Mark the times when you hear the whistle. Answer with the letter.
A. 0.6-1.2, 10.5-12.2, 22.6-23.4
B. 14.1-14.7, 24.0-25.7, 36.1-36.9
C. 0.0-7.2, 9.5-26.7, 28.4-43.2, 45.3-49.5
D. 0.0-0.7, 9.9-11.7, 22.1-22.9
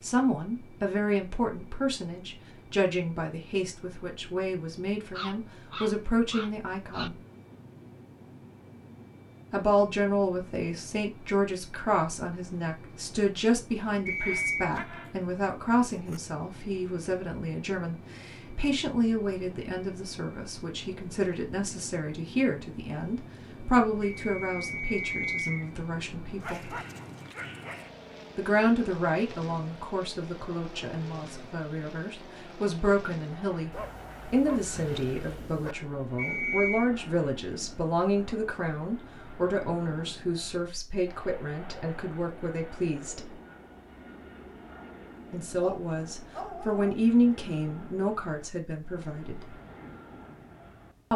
B.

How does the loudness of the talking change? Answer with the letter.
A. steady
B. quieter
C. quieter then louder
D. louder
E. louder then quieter
A.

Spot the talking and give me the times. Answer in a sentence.
The talking can be heard from 0.0 to 7.2 s, from 9.5 to 26.7 s, from 28.4 to 43.2 s and from 45.3 to 49.5 s.